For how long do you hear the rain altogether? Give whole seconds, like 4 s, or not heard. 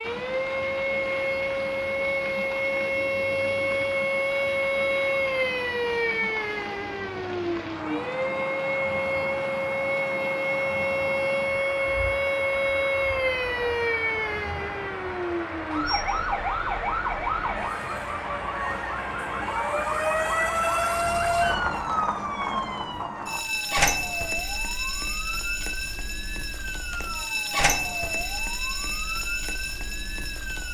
22 s.